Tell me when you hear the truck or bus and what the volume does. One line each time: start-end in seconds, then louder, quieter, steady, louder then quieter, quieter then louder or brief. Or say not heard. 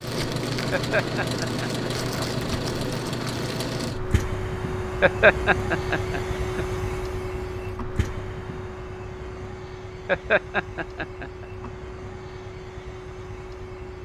0.0-14.0 quieter.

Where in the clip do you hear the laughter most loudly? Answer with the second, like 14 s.
5 s.